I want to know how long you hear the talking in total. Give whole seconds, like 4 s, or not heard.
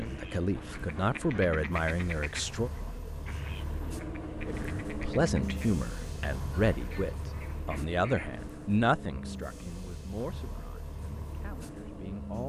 11 s.